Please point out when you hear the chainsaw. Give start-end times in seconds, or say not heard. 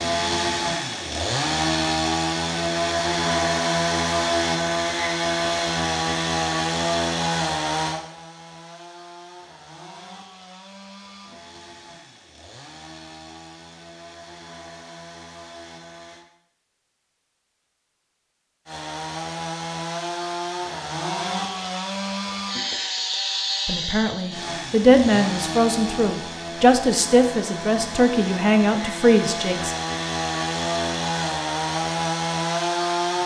0.0-16.2, 18.6-33.2.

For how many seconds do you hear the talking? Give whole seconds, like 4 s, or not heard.
6 s.